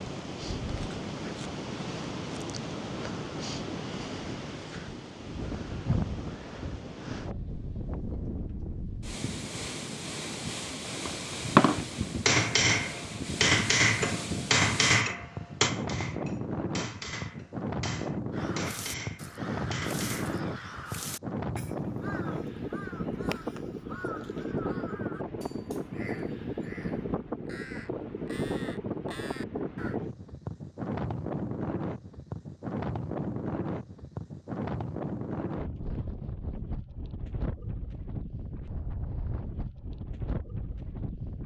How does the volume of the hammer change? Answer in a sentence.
The loudness of the hammer goes down.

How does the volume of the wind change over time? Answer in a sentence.
The loudness of the wind stays about the same.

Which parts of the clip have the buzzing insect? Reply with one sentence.
The buzzing insect can't be heard in this clip.